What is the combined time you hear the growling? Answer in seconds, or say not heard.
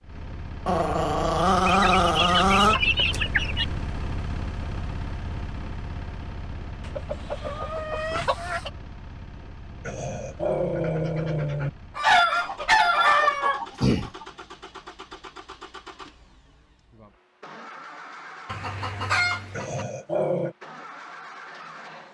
5 s.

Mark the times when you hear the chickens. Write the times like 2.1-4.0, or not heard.
1.6-3.6, 6.8-8.7, 11.9-14.2, 18.4-19.9.